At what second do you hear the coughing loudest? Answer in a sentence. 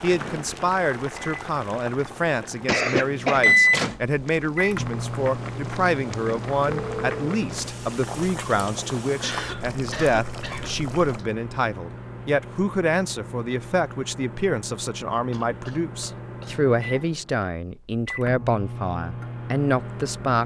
The volume of the coughing peaks at 3 seconds.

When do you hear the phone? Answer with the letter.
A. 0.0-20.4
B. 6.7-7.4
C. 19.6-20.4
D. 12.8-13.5
B.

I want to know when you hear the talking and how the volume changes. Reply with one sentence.
The talking can be heard from 0.0 to 20.4 s, at a steady volume.